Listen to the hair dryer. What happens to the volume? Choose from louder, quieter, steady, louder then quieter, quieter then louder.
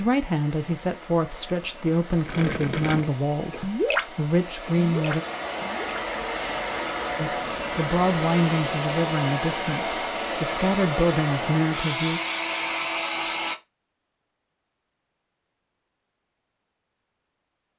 louder.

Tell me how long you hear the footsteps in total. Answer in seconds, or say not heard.
not heard.